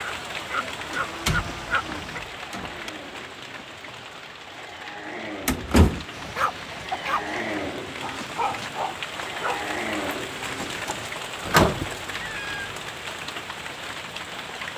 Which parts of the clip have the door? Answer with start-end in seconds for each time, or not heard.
0.9-2.9, 5.5-6.0, 10.5-11.8.